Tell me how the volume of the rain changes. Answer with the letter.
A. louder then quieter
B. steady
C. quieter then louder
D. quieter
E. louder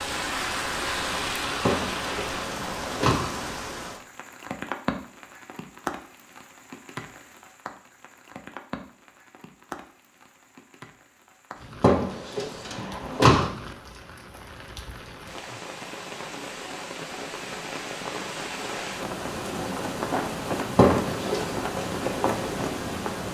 C.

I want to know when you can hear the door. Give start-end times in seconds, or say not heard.
1.6-3.3, 11.8-13.5, 20.8-21.5.